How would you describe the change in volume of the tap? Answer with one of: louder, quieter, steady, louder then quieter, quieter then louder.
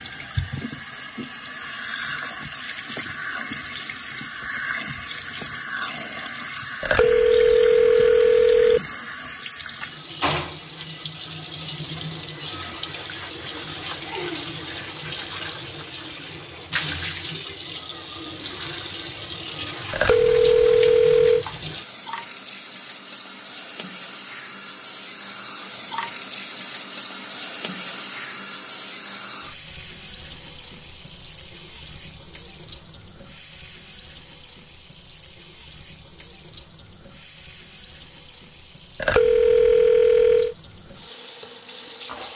quieter.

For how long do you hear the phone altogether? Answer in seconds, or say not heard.
5 s.